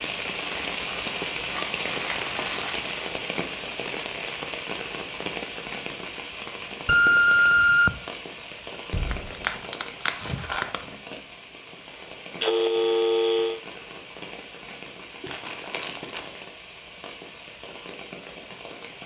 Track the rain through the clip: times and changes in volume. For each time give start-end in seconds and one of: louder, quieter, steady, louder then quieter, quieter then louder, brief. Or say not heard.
0.0-19.0 quieter.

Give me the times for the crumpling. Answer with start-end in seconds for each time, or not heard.
0.4-2.9, 8.9-10.9, 15.2-16.3.